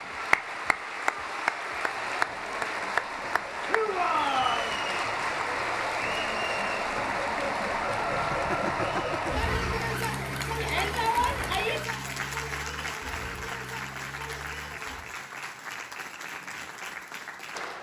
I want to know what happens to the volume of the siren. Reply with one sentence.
The volume of the siren goes up, then down.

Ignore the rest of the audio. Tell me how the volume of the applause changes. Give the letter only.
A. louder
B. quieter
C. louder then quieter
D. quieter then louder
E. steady
B.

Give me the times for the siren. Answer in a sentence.
The siren can be heard from 0.0 to 15.2 s.